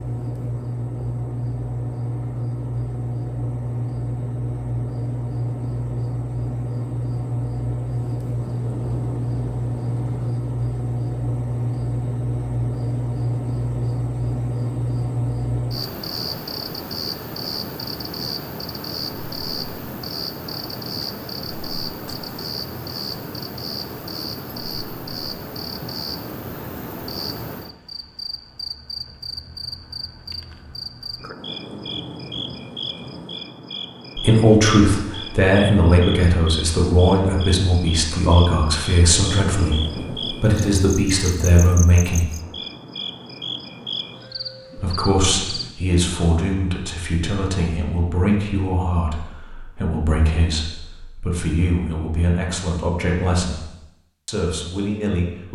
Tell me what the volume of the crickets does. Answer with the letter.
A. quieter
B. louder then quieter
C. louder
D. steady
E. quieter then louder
A.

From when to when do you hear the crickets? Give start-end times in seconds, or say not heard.
0.0-45.8.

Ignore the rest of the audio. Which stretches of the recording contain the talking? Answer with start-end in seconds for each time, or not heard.
34.1-42.2, 44.8-53.6, 54.2-55.5.